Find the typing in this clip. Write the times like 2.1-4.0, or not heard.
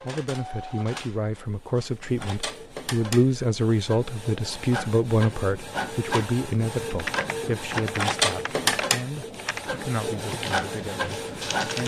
6.9-11.8.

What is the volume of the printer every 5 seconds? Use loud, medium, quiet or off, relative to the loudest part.
medium, loud, loud.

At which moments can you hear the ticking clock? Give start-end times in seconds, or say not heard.
not heard.